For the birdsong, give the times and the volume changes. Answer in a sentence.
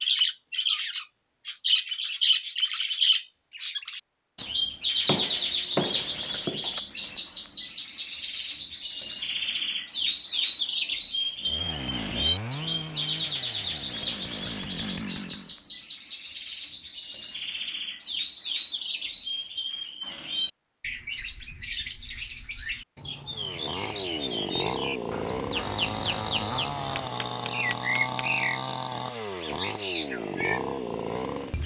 The birdsong can be heard from 0.0 to 31.6 s, getting quieter.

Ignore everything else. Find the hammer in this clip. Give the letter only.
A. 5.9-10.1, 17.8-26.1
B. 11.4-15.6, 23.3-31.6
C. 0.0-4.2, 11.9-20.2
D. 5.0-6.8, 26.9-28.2
D.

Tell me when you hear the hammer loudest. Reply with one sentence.
The loudest moment of the hammer is at 6 seconds.